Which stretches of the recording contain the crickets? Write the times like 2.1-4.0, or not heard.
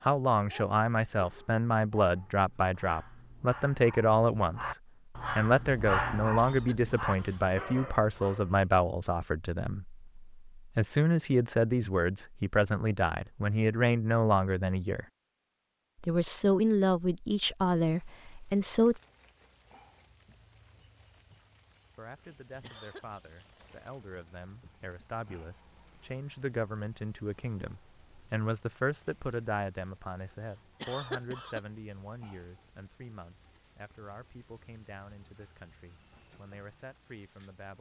17.6-37.7.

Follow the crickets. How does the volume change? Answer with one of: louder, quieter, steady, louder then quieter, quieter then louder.
steady.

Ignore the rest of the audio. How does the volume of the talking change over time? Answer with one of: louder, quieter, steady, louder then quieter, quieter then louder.
quieter.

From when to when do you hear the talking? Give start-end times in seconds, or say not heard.
0.0-4.8, 5.3-15.1, 16.0-19.0, 21.9-37.7.